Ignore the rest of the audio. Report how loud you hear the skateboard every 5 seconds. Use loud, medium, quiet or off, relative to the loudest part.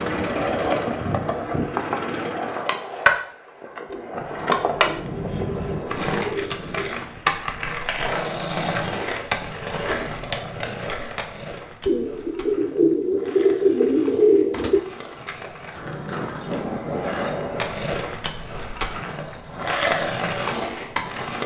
loud, loud, medium, loud, loud.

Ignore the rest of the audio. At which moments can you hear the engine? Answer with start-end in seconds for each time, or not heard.
0.0-2.8.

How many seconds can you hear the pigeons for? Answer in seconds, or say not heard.
6 s.